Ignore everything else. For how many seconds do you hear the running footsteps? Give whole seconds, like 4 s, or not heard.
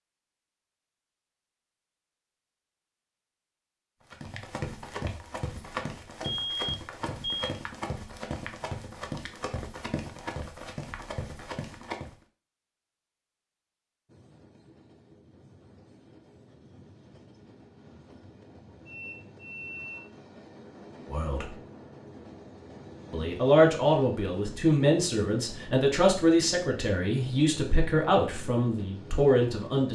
8 s.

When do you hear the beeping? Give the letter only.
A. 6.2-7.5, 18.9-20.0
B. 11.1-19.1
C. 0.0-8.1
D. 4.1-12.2
A.